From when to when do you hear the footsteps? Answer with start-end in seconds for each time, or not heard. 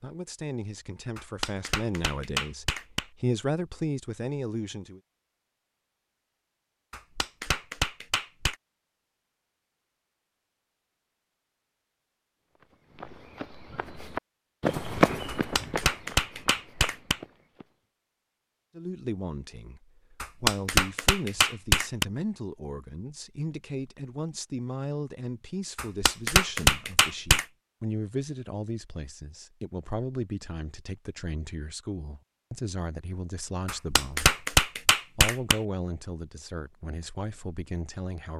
12.6-17.6.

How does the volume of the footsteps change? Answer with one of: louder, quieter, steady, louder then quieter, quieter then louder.
louder then quieter.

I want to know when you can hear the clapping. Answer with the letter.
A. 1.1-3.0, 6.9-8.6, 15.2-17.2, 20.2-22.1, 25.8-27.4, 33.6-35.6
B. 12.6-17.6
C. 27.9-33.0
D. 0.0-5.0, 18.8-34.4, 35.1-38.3
A.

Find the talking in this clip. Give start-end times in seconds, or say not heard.
0.0-5.0, 18.8-34.4, 35.1-38.3.